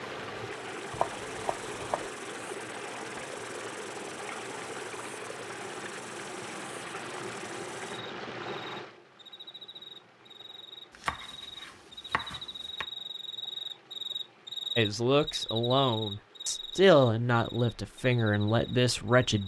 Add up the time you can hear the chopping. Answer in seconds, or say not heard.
3 s.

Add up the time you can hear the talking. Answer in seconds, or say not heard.
5 s.